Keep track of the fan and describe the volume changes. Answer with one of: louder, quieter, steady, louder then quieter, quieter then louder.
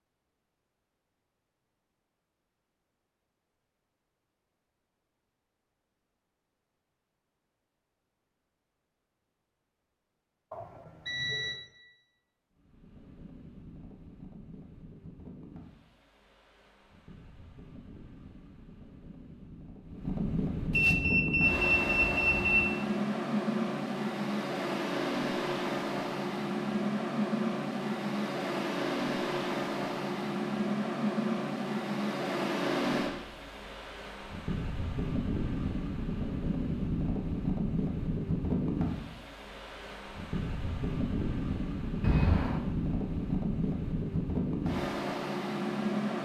louder.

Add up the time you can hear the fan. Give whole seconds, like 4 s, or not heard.
34 s.